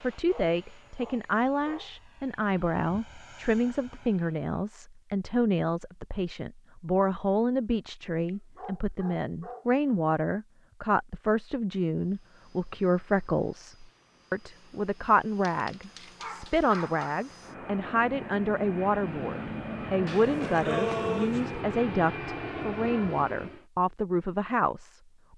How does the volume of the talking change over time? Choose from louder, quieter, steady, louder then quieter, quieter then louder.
steady.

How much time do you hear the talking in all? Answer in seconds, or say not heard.
25 s.